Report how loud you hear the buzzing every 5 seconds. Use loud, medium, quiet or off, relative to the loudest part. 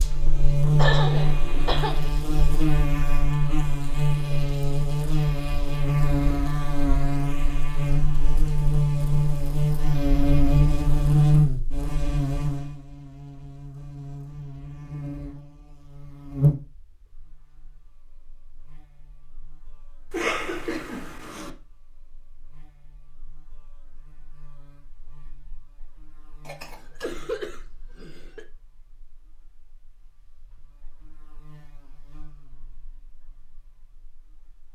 loud, loud, loud, medium, quiet, quiet, quiet.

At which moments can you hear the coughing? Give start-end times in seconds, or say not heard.
0.8-1.9, 20.1-21.5, 26.4-28.4.